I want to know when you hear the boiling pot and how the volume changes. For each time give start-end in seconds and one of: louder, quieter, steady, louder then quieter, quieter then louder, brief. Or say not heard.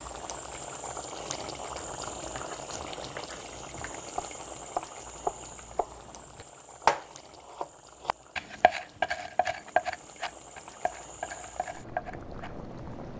0.0-13.1 quieter then louder.